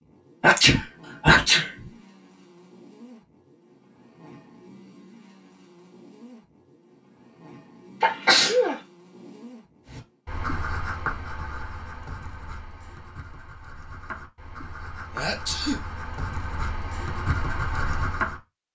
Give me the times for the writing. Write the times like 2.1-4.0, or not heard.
9.8-18.4.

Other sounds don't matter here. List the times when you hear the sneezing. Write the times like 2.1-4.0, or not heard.
0.4-1.7, 8.0-8.8, 15.1-15.8.